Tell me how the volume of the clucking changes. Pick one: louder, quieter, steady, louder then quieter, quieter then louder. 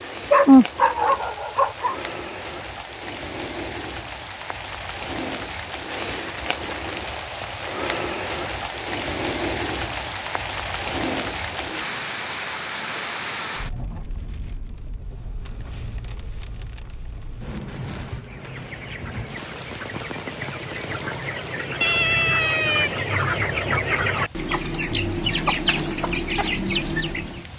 louder.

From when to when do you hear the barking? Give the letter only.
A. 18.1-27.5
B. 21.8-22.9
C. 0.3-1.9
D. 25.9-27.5
C.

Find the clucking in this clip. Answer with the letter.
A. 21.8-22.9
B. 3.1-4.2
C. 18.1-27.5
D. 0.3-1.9
C.